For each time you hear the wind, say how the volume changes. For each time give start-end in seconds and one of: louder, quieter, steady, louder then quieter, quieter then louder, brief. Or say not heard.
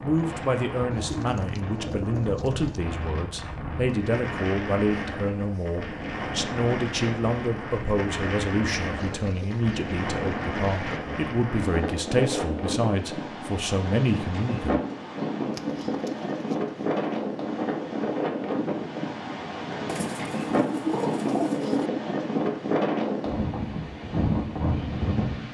0.0-25.4 louder.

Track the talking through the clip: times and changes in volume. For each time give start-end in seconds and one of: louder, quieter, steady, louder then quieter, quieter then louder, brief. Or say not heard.
0.0-14.8 steady.